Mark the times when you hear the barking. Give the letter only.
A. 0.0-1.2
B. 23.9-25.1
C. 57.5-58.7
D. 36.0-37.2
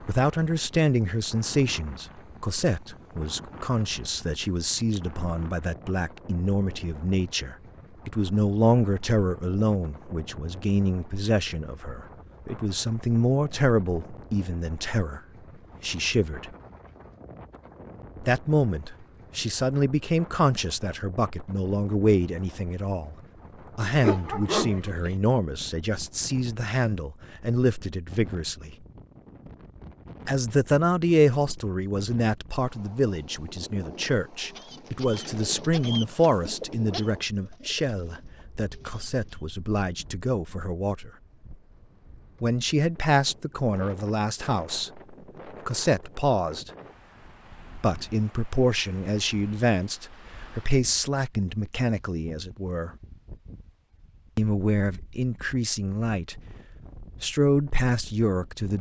B.